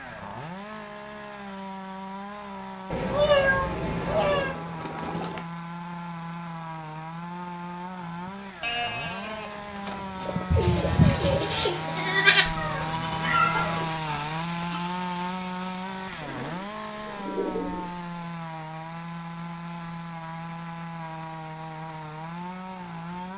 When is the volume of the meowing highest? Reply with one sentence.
The loudest moment of the meowing is at 3 seconds.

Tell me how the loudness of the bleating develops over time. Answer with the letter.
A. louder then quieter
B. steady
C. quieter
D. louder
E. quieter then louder
A.